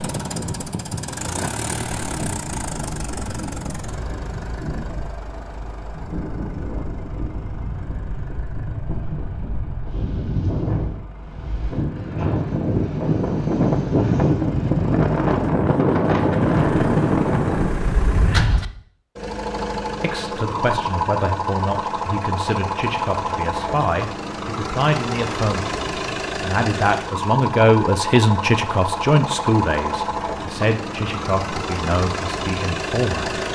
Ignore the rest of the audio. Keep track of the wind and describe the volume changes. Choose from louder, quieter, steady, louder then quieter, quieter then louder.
louder.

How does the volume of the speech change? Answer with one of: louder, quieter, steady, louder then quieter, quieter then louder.
louder then quieter.